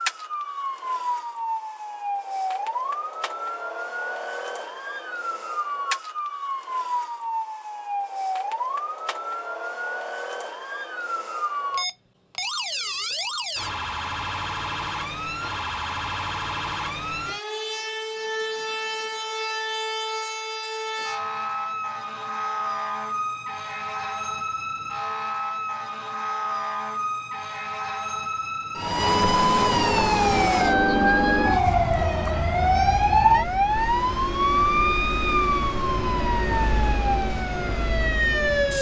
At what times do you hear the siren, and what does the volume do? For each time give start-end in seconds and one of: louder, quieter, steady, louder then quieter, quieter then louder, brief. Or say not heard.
0.0-38.7 louder.